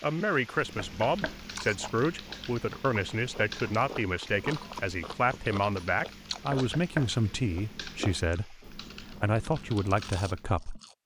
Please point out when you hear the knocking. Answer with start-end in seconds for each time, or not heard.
0.8-1.4, 6.5-7.2.